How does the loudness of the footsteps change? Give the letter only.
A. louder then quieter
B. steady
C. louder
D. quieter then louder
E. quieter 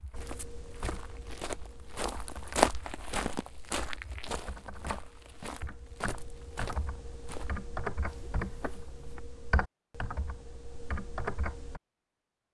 A.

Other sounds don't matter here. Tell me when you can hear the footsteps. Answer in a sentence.
You can hear the footsteps from 0.0 to 9.2 s.